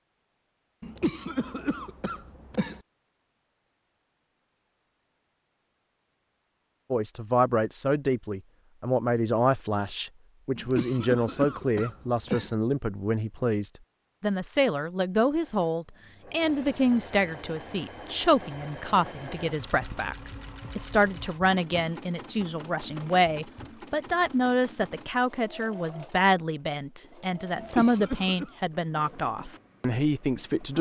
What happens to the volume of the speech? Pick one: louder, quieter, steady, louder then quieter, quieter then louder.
steady.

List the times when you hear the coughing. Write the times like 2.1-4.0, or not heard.
0.8-2.8, 10.6-12.6, 27.6-28.5.